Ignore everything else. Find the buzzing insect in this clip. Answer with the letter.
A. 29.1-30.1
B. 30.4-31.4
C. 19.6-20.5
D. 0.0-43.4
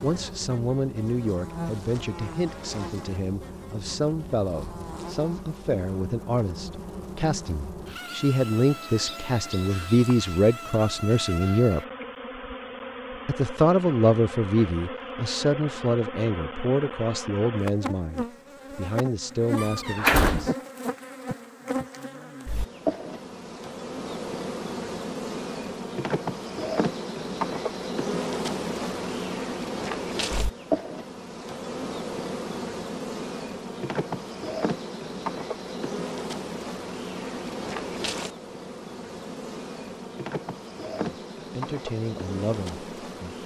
D.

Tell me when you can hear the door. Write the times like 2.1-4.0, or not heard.
19.6-20.5.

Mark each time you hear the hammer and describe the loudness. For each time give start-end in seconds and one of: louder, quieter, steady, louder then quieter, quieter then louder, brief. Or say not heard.
not heard.